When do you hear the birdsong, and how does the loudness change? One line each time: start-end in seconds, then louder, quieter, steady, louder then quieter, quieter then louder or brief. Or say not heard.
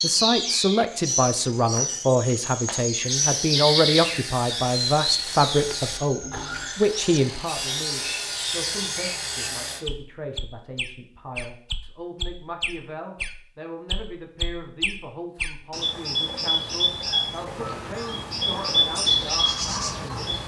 0.0-20.4 quieter then louder.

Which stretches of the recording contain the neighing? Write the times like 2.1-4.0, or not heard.
not heard.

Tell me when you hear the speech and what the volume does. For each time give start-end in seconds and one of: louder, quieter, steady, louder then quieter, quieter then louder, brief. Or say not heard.
0.0-20.4 quieter.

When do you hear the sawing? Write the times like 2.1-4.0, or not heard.
3.0-9.8.